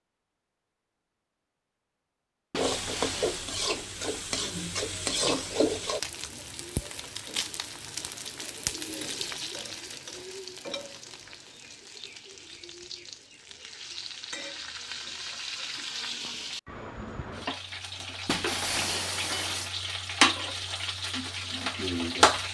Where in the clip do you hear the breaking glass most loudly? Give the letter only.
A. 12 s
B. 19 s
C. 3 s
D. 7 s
B.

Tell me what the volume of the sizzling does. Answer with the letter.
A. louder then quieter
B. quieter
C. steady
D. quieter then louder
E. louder
D.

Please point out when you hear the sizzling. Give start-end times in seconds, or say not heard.
2.5-22.4.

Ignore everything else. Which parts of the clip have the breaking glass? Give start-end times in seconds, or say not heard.
2.5-3.5, 18.2-19.7.